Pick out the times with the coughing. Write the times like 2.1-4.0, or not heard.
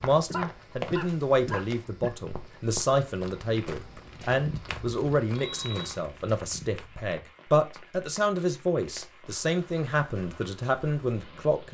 0.1-2.1.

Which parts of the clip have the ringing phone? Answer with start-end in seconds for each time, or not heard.
5.3-6.0.